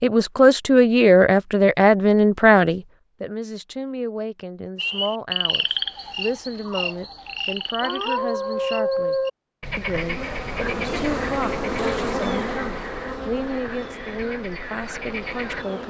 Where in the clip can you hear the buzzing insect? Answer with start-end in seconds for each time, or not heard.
9.9-15.8.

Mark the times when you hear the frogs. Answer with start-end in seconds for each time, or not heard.
4.8-15.8.